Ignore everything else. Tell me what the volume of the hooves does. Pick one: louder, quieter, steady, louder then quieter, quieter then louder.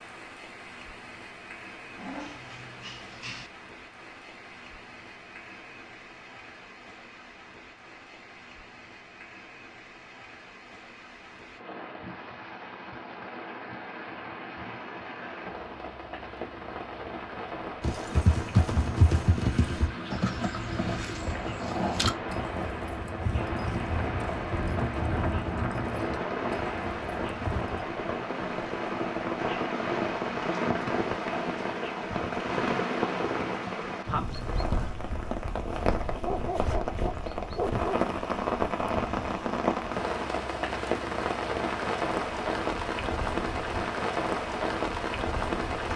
quieter.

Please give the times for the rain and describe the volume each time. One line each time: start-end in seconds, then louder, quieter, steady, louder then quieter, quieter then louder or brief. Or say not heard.
0.0-45.9 louder.